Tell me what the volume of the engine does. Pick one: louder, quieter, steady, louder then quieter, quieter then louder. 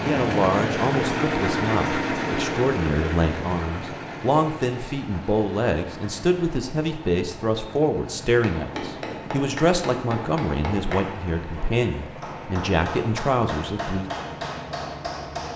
quieter.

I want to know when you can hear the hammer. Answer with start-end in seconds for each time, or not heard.
8.3-15.5.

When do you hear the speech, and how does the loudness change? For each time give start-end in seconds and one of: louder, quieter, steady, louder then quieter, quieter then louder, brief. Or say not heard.
0.1-14.1 steady.